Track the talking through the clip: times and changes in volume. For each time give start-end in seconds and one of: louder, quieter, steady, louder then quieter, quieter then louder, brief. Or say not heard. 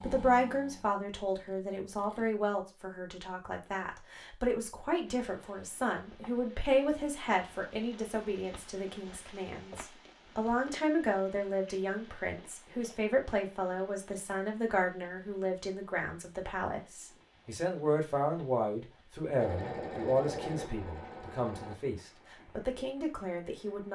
0.0-23.9 steady.